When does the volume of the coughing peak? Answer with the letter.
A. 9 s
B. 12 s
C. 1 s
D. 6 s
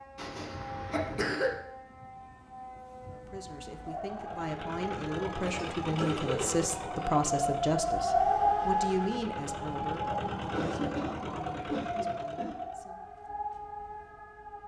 C.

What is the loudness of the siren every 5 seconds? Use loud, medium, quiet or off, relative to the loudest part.
quiet, loud, medium.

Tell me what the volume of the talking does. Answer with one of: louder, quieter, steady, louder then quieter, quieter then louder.
louder then quieter.